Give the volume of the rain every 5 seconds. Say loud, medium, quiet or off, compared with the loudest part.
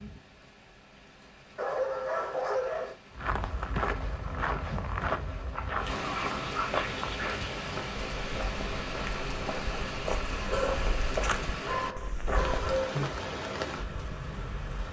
quiet, loud, loud.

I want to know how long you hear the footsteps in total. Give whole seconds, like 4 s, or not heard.
10 s.